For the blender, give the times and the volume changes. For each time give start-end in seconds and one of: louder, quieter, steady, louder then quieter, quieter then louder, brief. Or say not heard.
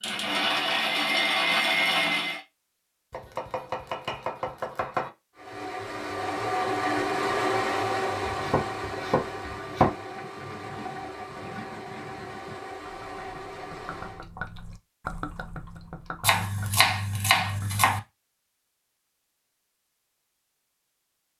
0.0-2.4 brief
5.3-14.2 quieter.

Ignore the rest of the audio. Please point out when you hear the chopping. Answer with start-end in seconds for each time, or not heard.
3.1-5.1, 8.2-9.9, 16.2-18.0.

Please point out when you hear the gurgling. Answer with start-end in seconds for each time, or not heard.
10.1-17.9.